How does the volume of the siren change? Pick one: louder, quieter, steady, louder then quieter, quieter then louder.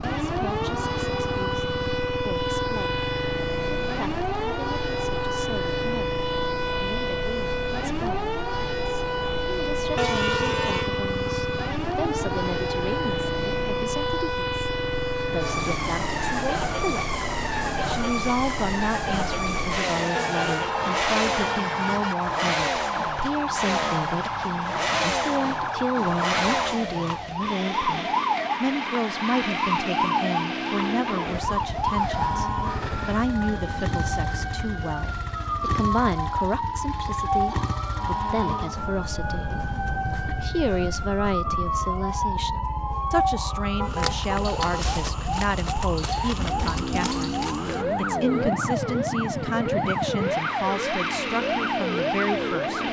steady.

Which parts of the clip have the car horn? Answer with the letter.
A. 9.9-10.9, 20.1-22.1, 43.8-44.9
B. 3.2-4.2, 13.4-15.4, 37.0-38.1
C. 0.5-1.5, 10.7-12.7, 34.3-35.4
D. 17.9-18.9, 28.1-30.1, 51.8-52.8
A.